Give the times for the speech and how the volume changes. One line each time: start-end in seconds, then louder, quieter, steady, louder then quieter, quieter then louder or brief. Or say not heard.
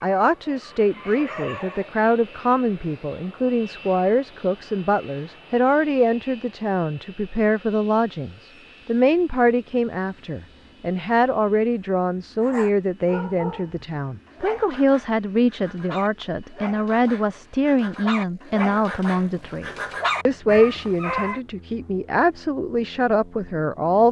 0.0-24.0 steady.